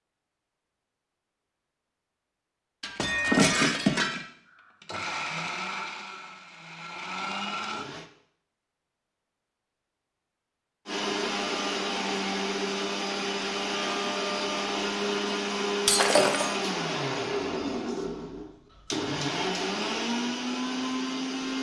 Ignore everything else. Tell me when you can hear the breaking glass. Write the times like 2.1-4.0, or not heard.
2.8-4.2, 15.8-16.6.